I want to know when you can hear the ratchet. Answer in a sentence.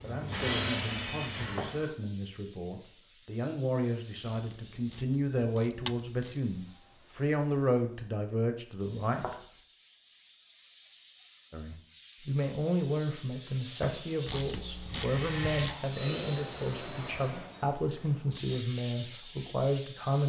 You can hear the ratchet from 4.2 to 6.4 s and from 14.2 to 15.8 s.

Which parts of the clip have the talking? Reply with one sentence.
The talking can be heard from 0.0 to 9.3 s and from 11.5 to 20.2 s.